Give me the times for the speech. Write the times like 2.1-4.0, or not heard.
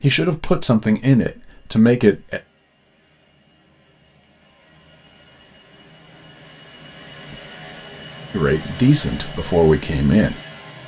0.0-2.4, 8.3-10.4.